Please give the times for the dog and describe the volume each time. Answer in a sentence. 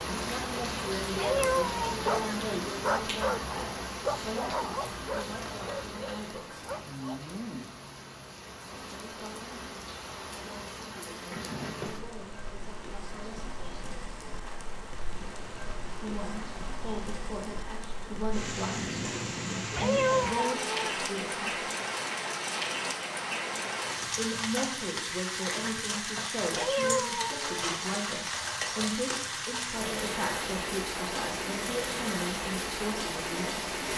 You can hear the dog from 1.9 to 7.3 s, getting quieter.